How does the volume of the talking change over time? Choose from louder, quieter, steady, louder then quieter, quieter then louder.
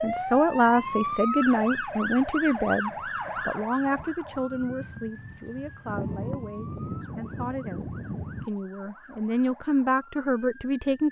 quieter then louder.